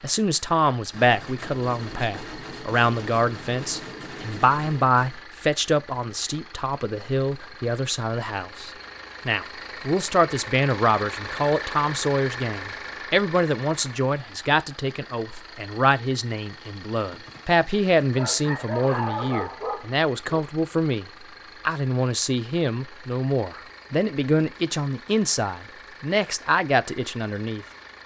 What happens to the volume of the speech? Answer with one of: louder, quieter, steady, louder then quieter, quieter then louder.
steady.